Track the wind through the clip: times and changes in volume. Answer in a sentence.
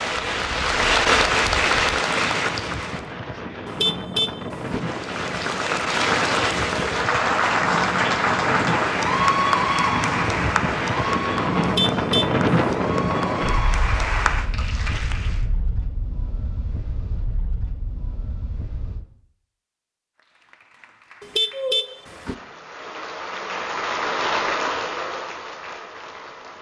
You can hear the wind from 0.0 to 19.1 s, getting louder then quieter.